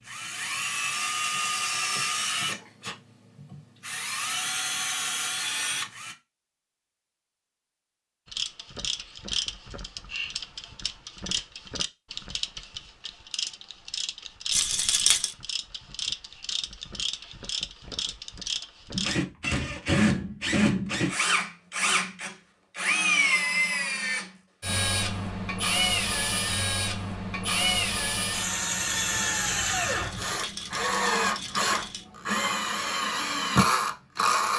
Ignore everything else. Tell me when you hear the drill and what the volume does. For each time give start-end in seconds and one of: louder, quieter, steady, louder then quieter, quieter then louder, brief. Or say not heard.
0.1-6.2 quieter then louder
18.9-34.5 steady.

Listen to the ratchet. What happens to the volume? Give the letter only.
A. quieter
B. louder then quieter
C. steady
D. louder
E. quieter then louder
C.